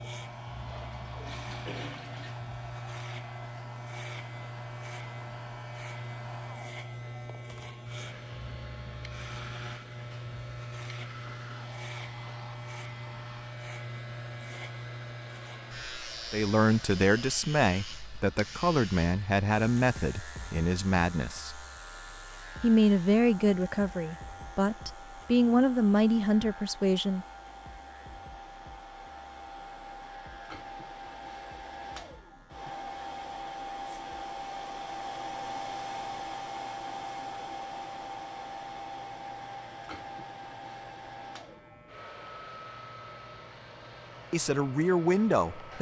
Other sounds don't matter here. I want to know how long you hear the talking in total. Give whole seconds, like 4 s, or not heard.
11 s.